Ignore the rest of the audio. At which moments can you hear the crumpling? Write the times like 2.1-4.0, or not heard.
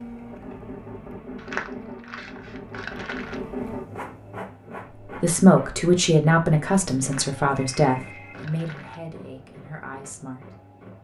1.4-3.4, 7.0-9.0.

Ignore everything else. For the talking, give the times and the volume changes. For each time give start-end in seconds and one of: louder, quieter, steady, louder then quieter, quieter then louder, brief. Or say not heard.
5.0-10.5 quieter.